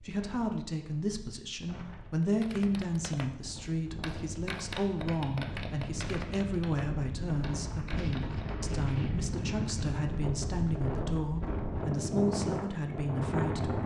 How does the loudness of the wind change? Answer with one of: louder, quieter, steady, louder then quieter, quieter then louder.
louder.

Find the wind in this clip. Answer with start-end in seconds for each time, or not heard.
0.0-13.8.